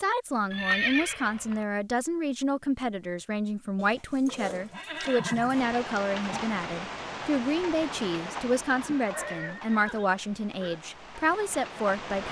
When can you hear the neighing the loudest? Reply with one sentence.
The volume of the neighing peaks at 1 second.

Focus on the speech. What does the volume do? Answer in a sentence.
The volume of the speech stays about the same.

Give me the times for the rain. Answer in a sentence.
The rain can be heard from 5.5 to 12.2 s.